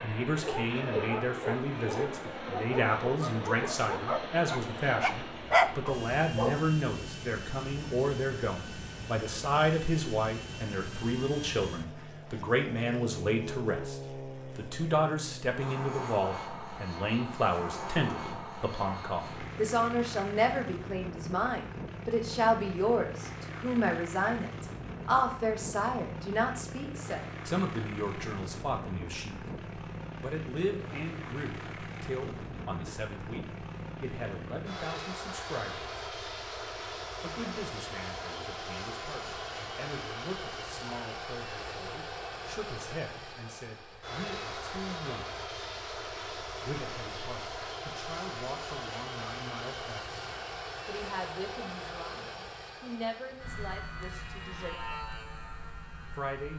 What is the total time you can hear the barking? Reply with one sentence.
The barking can be heard for 6 seconds in total.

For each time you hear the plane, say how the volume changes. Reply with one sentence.
You can hear the plane from 0.0 to 56.5 s, at a steady volume.